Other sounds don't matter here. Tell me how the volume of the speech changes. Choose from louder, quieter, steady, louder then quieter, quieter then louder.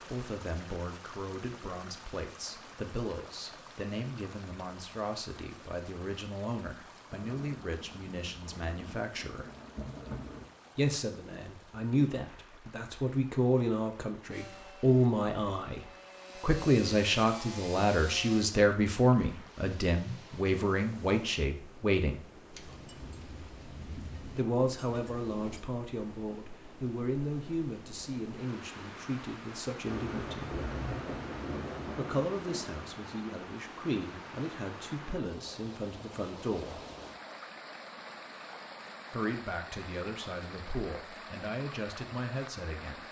louder then quieter.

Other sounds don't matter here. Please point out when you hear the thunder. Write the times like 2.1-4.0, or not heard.
7.1-10.5, 22.5-25.6, 29.9-32.8.